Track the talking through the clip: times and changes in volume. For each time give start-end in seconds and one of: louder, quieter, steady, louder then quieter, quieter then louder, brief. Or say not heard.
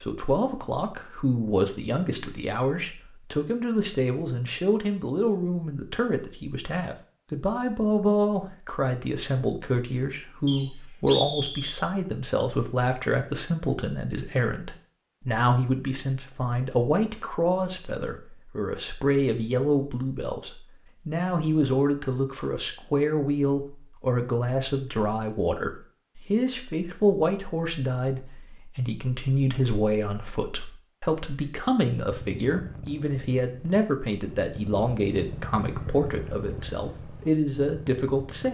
0.0-38.5 steady.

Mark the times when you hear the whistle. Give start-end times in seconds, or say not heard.
10.4-11.8.